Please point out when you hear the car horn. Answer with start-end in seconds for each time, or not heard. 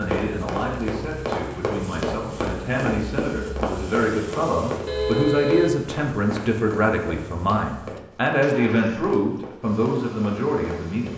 4.8-5.8.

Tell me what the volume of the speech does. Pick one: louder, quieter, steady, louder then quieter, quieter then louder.
louder.